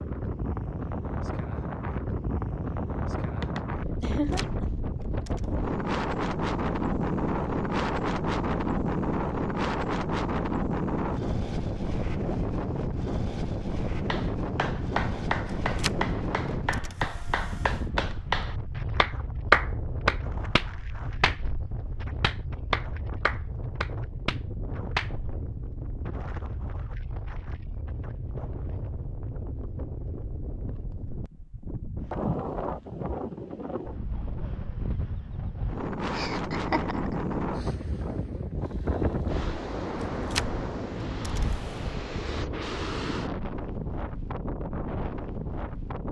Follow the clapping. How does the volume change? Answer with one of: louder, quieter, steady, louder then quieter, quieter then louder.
louder then quieter.